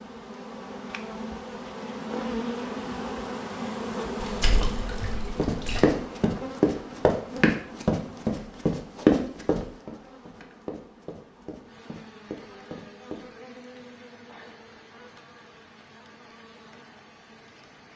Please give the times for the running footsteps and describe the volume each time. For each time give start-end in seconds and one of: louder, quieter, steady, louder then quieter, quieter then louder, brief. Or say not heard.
5.3-13.2 quieter.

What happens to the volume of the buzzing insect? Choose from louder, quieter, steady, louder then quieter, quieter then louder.
quieter.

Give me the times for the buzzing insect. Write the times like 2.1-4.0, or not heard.
0.0-17.9.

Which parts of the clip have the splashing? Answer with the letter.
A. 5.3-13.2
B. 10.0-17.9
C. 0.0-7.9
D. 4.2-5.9
D.